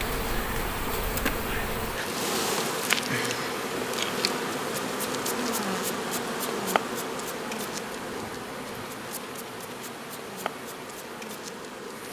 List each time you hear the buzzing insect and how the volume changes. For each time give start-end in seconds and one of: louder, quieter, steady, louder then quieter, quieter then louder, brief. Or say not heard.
0.0-12.0 quieter.